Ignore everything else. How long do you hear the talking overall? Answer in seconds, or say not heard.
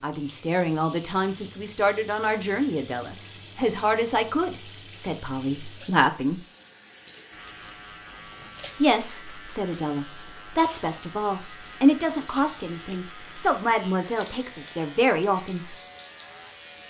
13 s.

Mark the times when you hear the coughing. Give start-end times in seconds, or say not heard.
not heard.